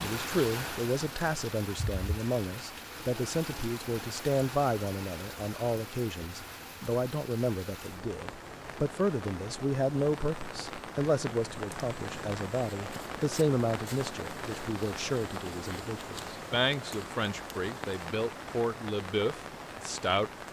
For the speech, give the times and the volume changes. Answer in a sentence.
You can hear the speech from 0.0 to 20.3 s, at a steady volume.